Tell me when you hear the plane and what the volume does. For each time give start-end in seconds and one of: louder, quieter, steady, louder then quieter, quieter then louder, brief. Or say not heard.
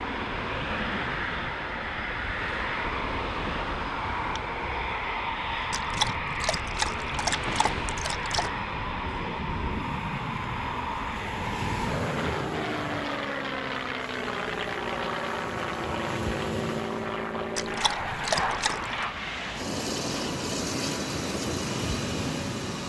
0.0-22.8 steady.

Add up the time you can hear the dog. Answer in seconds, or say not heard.
4 s.